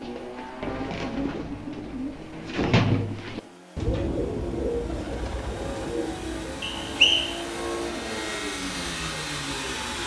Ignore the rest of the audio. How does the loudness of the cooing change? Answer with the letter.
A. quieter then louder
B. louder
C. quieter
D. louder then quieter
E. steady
D.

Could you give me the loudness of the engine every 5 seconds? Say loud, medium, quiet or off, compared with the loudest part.
medium, loud.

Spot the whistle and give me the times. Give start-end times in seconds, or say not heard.
6.6-7.4.